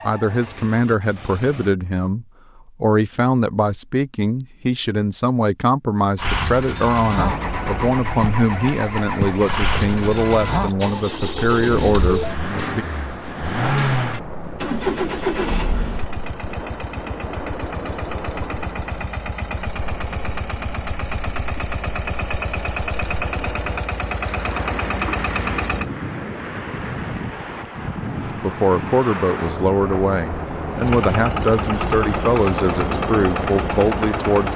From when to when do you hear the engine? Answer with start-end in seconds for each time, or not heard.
0.0-1.8, 6.2-25.9, 30.8-34.5.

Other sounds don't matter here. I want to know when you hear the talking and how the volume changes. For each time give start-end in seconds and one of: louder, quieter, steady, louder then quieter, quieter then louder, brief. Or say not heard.
0.1-12.8 steady
28.4-34.5 steady.